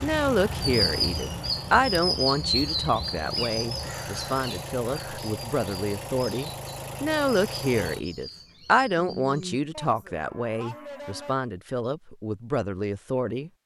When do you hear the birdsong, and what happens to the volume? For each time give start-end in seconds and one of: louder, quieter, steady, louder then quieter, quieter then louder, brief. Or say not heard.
0.0-9.6 quieter.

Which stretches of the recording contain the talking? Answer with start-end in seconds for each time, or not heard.
0.0-13.5.